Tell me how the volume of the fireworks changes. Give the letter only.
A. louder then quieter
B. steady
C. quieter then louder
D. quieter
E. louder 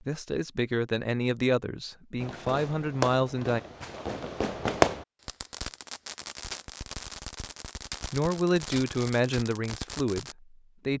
A.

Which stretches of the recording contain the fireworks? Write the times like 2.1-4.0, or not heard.
2.1-10.3.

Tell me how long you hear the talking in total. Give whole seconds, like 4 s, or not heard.
6 s.